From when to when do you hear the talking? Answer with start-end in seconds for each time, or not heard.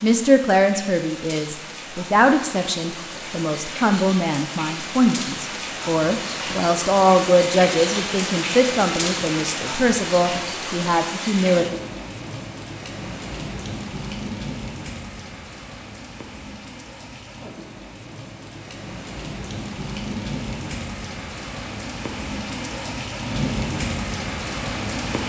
0.0-11.7.